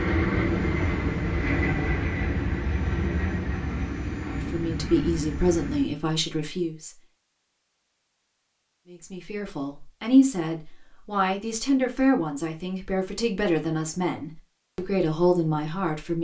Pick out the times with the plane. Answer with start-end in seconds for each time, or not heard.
0.0-5.9.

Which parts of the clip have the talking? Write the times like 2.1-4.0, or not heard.
4.2-6.9, 8.9-16.1.